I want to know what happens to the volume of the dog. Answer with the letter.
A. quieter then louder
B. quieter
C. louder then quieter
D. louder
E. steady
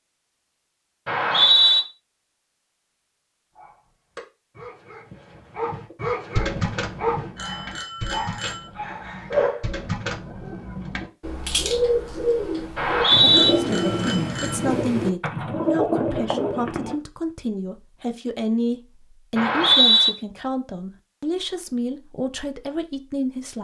C.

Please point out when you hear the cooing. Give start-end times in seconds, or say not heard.
5.9-16.9.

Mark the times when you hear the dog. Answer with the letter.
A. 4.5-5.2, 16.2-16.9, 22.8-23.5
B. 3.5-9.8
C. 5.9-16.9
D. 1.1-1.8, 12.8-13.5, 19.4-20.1
B.